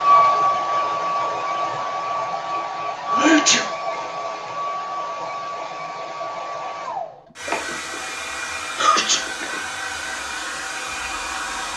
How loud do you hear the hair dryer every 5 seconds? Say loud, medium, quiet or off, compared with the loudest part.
loud, medium, medium.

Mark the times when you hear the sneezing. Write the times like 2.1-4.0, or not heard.
3.1-3.6, 7.5-8.0, 8.6-9.6.